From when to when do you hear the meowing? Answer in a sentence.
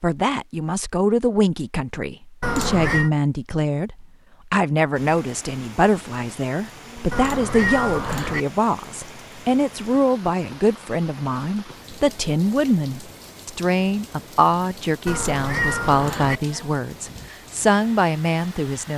You can hear the meowing from 2.4 to 3.1 s, from 7.1 to 8.4 s and from 15.1 to 16.4 s.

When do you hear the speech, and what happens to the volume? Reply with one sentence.
You can hear the speech from 0.0 to 18.9 s, at a steady volume.